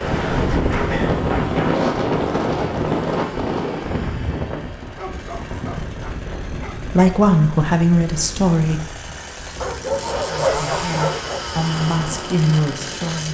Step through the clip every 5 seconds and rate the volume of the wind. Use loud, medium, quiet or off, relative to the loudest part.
loud, quiet, quiet.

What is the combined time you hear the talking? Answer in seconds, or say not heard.
5 s.